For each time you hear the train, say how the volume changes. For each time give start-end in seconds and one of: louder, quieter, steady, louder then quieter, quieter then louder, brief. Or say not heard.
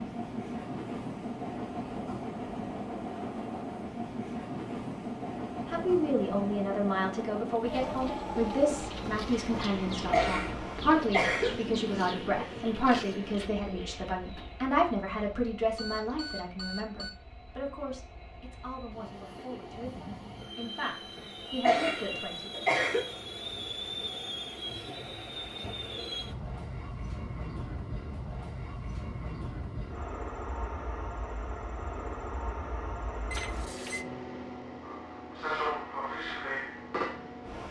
0.0-37.6 quieter then louder.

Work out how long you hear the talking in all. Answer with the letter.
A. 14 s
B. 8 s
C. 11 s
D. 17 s
D.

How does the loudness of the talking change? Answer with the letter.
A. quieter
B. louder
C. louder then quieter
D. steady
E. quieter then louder
A.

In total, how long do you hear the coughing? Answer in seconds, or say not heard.
3 s.